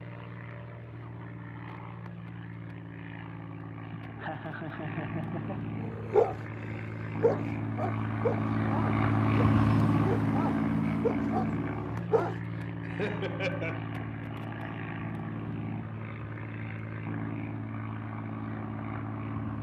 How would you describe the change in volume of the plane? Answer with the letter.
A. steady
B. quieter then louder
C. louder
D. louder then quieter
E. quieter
D.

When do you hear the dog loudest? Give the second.
6 s.